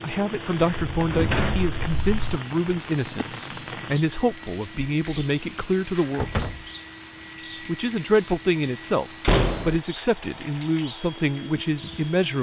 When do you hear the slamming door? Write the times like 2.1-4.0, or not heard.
0.9-2.4, 6.2-6.7, 9.2-9.8.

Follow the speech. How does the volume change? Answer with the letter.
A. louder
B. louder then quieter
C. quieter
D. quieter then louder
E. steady
E.